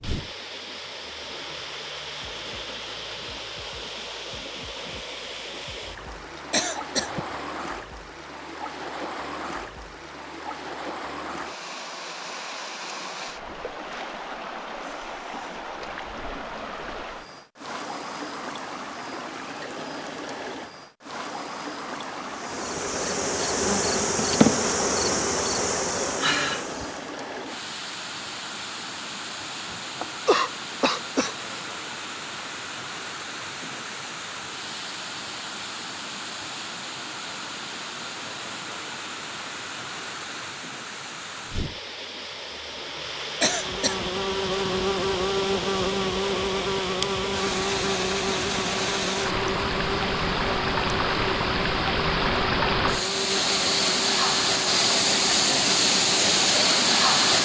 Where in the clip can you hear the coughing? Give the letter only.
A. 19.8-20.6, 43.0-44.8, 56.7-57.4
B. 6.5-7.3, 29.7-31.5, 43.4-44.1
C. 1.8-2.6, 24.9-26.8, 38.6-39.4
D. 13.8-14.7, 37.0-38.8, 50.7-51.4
B.